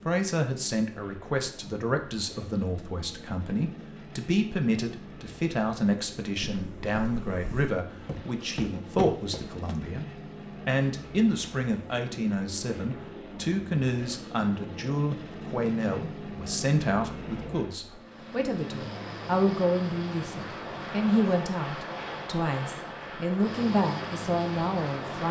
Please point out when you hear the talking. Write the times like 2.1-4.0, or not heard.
0.1-10.1, 10.7-25.2.